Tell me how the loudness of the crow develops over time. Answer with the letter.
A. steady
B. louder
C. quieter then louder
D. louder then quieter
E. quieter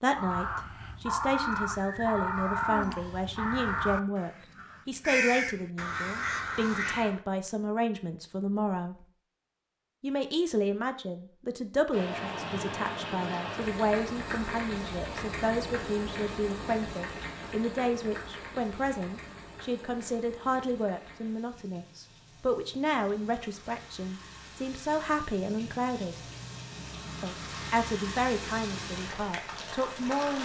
A.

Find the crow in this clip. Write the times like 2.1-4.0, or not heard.
0.1-7.2.